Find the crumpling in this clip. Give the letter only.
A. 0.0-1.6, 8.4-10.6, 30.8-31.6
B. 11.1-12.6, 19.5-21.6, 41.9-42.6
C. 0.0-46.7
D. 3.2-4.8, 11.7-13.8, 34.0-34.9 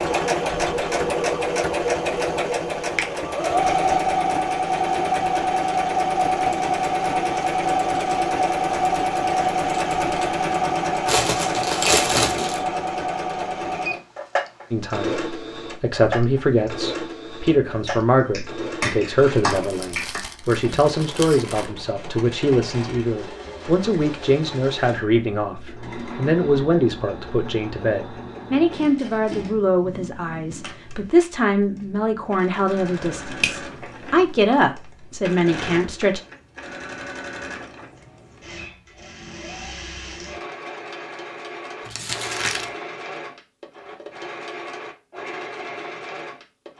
B.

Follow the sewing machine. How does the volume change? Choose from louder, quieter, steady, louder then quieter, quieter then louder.
quieter.